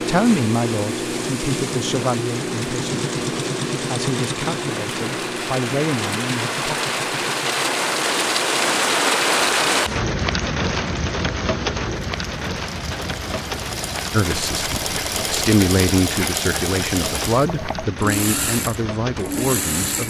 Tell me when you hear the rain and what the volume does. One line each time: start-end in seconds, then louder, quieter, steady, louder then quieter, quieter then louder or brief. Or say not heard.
0.0-20.0 louder then quieter.